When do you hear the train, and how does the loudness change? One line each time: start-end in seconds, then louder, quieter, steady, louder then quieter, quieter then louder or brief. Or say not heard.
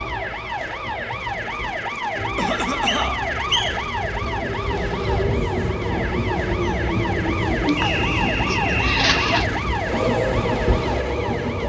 0.0-11.6 louder.